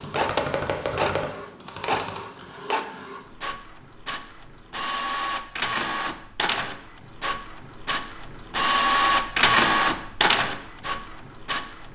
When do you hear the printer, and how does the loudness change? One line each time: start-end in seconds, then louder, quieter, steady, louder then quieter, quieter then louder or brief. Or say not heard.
0.0-11.9 louder.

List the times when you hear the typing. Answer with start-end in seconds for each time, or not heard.
0.0-2.5.